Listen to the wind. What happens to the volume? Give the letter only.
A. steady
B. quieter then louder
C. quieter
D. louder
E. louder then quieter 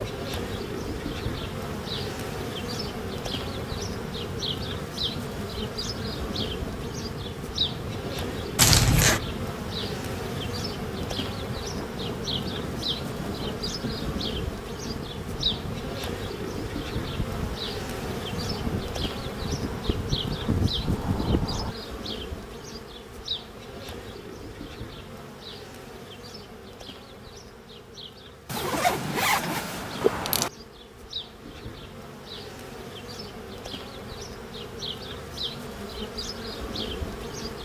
D.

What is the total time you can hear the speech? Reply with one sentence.
The speech can't be heard in this clip.